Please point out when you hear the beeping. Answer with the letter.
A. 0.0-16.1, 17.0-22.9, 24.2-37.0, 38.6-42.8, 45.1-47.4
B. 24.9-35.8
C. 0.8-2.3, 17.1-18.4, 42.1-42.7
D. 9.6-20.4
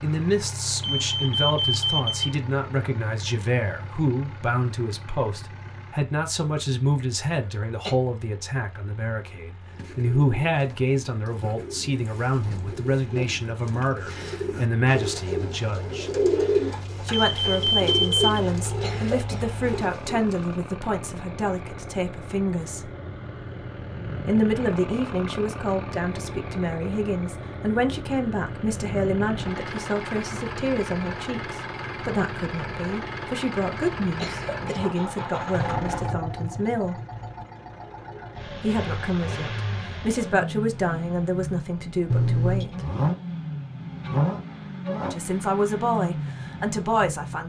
C.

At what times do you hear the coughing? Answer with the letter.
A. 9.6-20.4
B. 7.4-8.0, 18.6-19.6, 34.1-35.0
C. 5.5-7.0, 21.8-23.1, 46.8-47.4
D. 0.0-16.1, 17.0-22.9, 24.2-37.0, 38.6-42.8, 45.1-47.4
B.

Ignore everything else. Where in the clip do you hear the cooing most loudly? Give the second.
16 s.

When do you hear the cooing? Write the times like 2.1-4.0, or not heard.
9.6-20.4.